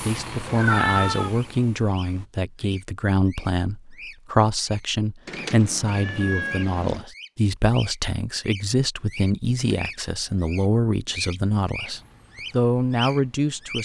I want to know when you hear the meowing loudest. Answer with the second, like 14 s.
1 s.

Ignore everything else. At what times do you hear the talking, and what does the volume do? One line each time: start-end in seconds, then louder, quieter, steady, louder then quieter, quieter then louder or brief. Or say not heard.
0.1-13.8 steady.